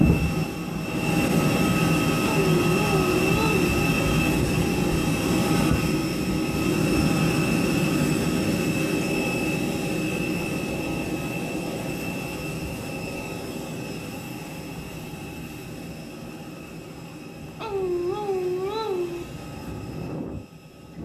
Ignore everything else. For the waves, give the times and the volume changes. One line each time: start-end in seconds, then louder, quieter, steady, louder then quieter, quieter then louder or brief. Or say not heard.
not heard.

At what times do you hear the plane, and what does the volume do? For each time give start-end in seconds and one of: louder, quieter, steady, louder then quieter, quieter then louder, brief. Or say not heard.
0.0-21.0 quieter.